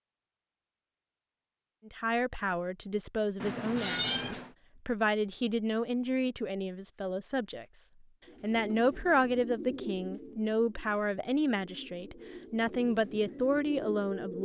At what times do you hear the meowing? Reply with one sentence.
The meowing can be heard from 3.4 to 4.5 s.